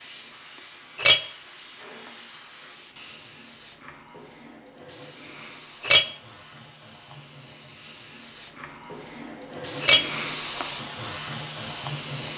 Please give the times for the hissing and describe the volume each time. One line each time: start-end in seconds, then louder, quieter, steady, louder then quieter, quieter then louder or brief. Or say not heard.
0.0-12.3 louder.